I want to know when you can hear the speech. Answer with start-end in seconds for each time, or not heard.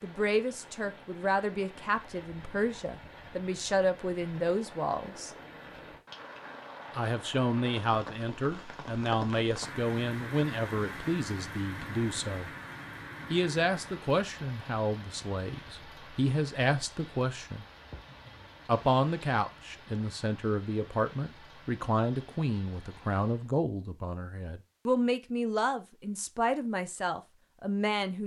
0.0-5.3, 7.0-12.5, 13.3-17.6, 18.6-28.2.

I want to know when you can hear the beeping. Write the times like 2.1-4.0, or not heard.
not heard.